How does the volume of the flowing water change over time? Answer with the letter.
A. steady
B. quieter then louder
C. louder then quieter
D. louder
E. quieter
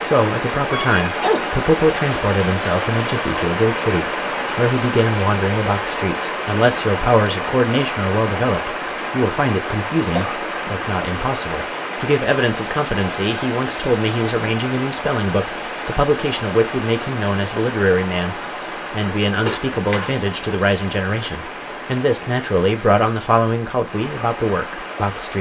E.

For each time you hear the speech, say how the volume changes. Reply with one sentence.
The speech can be heard from 0.0 to 25.3 s, at a steady volume.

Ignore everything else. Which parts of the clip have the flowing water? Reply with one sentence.
You can hear the flowing water from 0.0 to 25.3 s.